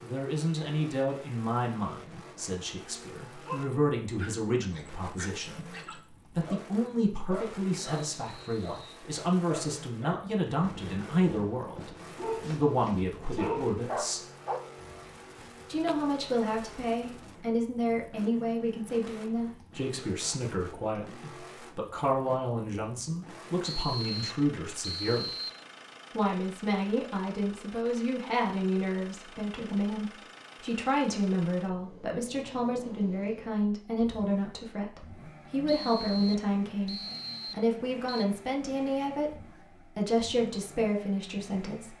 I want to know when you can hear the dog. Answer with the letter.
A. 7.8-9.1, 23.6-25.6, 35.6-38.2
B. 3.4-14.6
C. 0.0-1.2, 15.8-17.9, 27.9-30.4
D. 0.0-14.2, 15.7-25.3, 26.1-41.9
B.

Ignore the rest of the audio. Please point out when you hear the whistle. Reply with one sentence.
You can hear the whistle from 7.8 to 9.1 s, from 23.6 to 25.6 s and from 35.6 to 38.2 s.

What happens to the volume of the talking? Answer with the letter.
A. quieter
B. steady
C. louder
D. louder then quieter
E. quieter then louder
B.